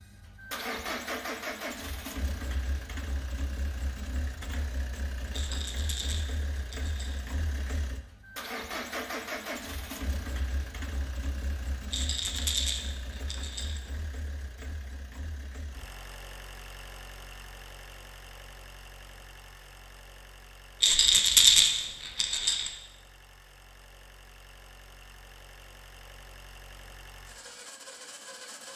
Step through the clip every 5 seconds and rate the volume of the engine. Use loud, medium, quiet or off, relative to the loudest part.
loud, loud, medium, medium, quiet, medium.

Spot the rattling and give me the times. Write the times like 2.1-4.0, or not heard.
5.3-7.2, 11.9-13.8, 20.8-22.7.